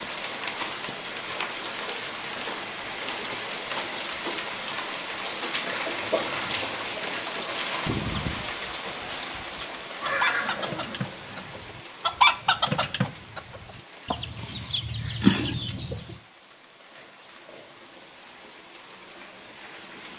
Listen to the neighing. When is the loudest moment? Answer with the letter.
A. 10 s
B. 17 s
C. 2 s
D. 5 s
A.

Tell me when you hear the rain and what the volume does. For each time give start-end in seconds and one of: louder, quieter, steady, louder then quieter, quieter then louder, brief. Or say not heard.
0.0-20.1 quieter.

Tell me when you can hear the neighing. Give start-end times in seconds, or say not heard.
10.0-11.5.